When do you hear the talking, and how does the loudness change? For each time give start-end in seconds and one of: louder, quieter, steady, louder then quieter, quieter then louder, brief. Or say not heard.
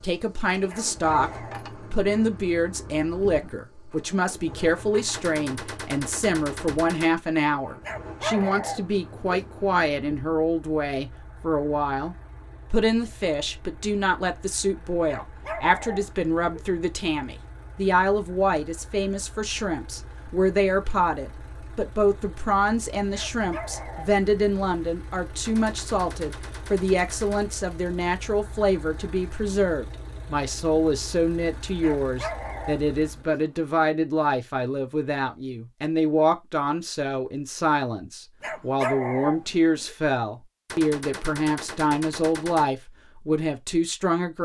0.0-1.3 brief
1.9-44.4 steady.